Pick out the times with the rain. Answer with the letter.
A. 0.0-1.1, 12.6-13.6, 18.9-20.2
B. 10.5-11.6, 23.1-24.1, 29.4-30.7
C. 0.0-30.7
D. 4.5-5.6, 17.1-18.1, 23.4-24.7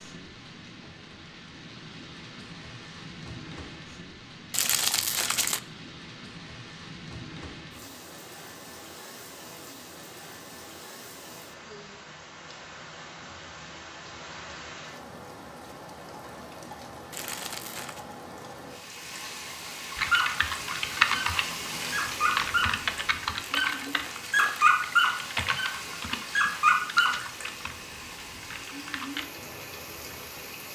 C.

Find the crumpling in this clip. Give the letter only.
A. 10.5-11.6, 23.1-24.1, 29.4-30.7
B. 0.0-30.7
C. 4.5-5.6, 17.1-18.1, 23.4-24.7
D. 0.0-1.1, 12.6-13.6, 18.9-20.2
C.